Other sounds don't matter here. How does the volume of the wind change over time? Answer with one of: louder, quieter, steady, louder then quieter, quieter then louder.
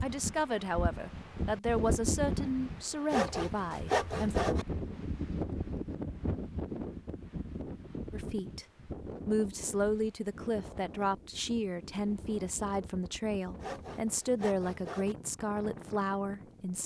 quieter.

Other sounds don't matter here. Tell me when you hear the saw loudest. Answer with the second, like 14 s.
4 s.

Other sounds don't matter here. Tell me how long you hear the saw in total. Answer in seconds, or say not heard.
3 s.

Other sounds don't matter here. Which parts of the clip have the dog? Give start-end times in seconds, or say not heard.
not heard.